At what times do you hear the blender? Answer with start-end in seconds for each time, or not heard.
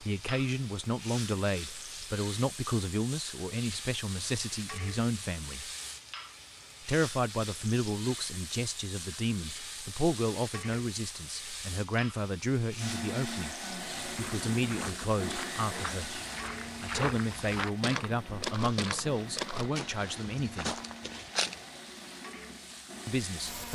12.8-23.7.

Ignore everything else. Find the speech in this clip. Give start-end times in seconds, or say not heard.
0.0-5.7, 6.8-16.2, 16.8-20.8, 23.1-23.7.